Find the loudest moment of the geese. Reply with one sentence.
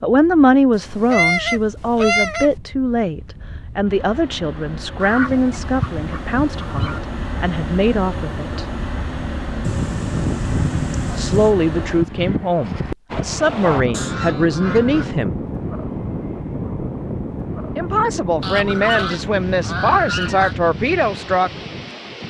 The volume of the geese peaks at 1 second.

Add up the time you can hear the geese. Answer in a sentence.
You can hear the geese for 9 seconds altogether.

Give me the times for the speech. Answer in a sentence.
You can hear the speech from 0.0 to 8.7 s, from 11.2 to 15.3 s and from 17.8 to 21.5 s.